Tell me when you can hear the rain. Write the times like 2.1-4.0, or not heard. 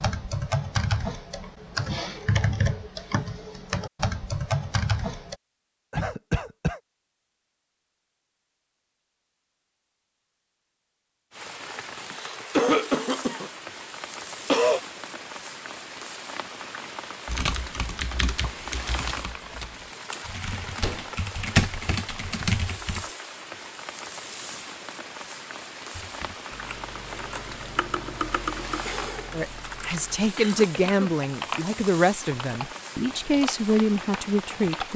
11.3-34.9.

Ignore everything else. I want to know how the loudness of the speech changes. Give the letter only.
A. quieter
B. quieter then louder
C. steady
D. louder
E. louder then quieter
C.